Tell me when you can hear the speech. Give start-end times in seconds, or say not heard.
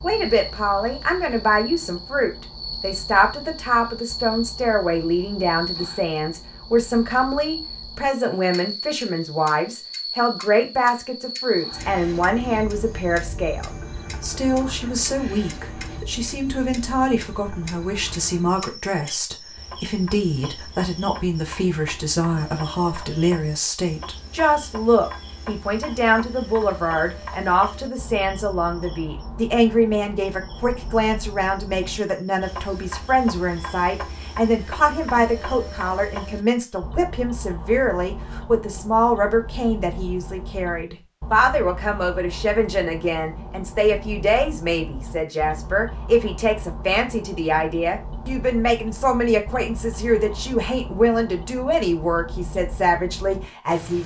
0.0-54.0.